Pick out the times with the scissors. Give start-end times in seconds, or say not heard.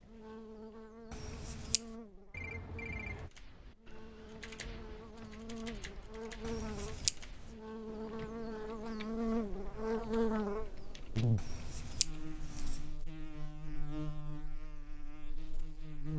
1.1-1.8, 6.5-7.5, 11.3-12.8.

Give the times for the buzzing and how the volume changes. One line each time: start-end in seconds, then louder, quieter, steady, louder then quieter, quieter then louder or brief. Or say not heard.
0.0-16.1 louder then quieter.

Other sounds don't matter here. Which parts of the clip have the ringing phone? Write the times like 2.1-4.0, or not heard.
2.3-3.3.